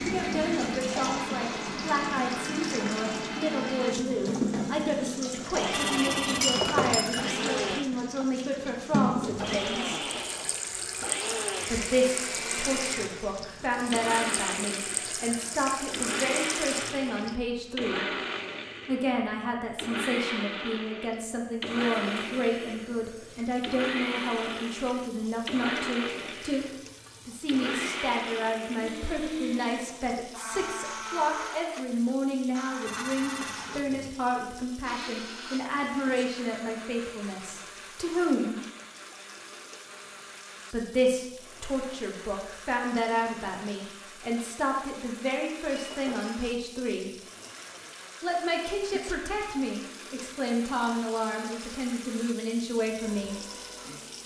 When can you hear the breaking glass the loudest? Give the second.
7 s.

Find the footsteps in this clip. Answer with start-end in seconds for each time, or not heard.
not heard.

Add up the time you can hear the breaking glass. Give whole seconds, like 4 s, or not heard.
2 s.